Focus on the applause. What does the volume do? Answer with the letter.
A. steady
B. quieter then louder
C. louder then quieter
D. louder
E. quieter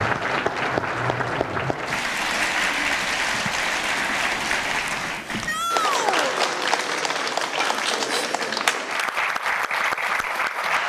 A.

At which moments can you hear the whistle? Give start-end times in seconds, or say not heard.
not heard.